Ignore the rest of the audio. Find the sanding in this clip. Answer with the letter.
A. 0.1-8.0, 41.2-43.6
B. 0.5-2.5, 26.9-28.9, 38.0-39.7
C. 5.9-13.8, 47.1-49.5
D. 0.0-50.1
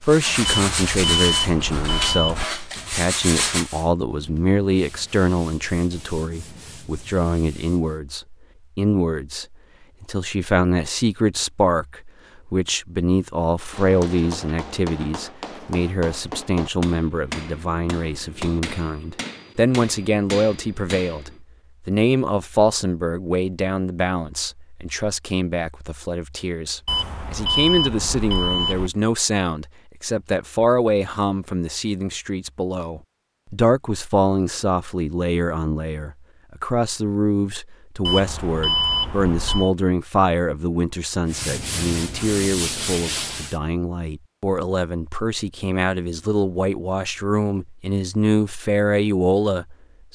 A.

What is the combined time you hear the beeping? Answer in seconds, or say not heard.
6 s.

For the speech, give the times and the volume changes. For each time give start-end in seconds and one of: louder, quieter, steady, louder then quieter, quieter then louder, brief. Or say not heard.
0.0-50.1 steady.